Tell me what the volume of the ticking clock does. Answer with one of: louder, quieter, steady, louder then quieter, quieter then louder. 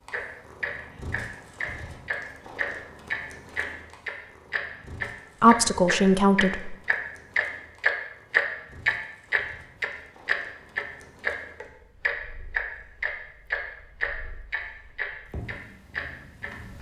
louder then quieter.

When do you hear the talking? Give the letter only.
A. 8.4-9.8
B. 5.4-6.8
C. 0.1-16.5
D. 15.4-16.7
B.